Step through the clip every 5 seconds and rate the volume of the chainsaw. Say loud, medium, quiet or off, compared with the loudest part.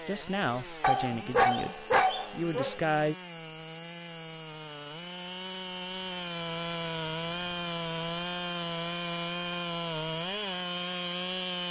medium, loud, loud.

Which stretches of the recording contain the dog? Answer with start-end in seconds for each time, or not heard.
0.8-2.8.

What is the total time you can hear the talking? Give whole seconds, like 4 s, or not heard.
3 s.